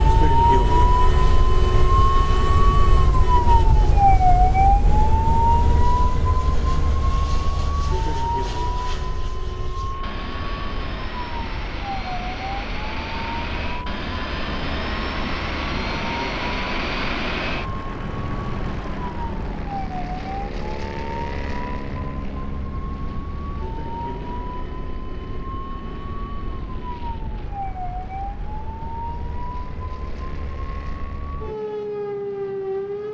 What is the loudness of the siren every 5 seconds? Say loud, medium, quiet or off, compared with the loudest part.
loud, medium, quiet, quiet, quiet, quiet, medium.